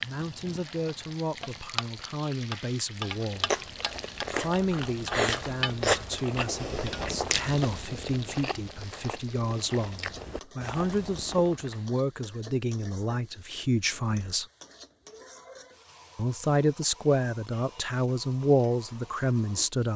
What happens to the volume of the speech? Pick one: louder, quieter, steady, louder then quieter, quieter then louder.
louder.